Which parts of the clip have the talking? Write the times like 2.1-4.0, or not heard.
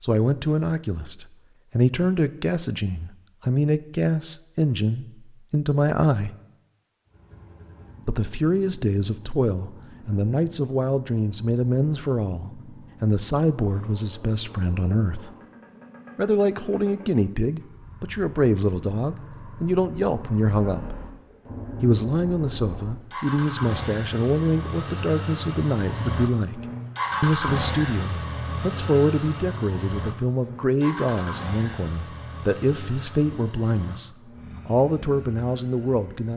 0.0-6.3, 8.1-15.3, 16.1-21.0, 21.8-36.3.